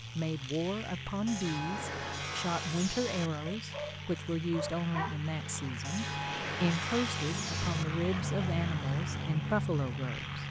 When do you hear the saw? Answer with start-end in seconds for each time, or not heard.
1.2-3.3, 5.8-7.8.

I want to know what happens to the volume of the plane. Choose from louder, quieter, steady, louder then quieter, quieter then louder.
louder.